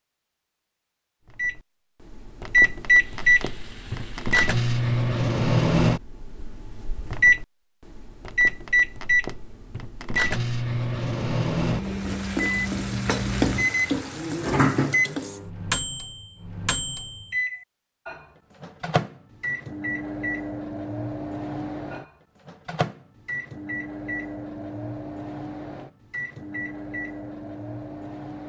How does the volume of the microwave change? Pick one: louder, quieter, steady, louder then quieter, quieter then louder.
quieter.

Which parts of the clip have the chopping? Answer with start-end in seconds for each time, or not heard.
not heard.